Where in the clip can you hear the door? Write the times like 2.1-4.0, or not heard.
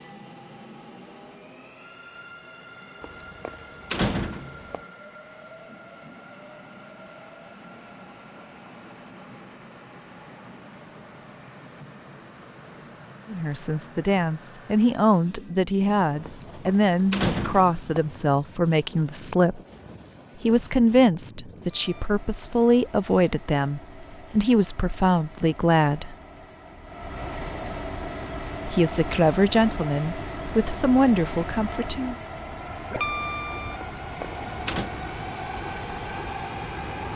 3.0-4.8, 16.2-18.2, 33.8-34.9.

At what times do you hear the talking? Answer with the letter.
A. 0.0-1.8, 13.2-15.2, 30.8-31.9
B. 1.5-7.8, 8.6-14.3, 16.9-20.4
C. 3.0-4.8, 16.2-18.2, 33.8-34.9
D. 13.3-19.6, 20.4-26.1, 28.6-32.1
D.